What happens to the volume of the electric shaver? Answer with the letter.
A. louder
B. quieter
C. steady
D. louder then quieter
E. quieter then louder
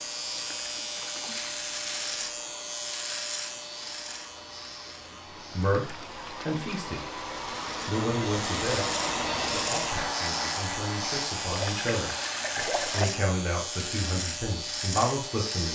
E.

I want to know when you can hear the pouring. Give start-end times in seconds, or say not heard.
0.3-1.6, 5.6-6.8, 11.5-13.1.